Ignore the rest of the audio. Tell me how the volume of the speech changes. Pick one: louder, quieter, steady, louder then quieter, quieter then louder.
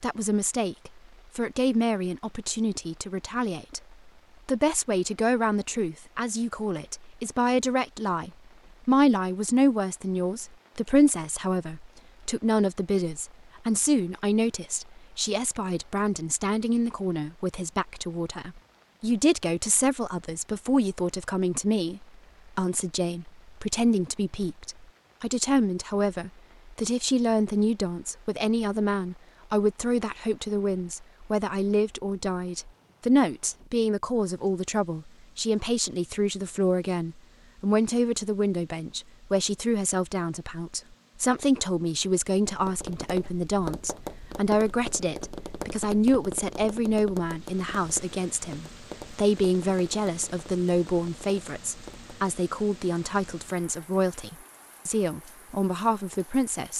steady.